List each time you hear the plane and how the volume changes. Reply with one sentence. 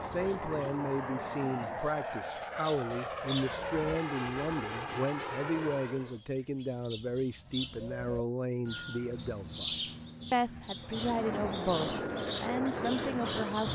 You can hear the plane from 0.0 to 6.2 s, at a steady volume; and briefly from 10.8 to 13.7 s.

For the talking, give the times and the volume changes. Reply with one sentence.
You can hear the talking from 0.0 to 13.7 s, at a steady volume.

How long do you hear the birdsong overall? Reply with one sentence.
The birdsong can be heard for 14 seconds in total.